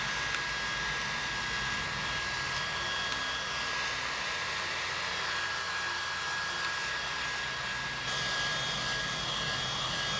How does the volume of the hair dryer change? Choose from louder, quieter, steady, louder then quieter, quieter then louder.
steady.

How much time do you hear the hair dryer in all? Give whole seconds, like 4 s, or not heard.
10 s.